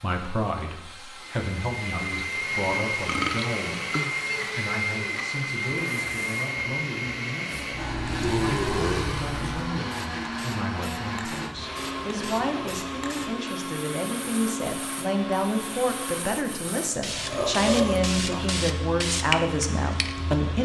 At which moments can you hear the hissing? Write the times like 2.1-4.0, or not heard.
0.0-20.6.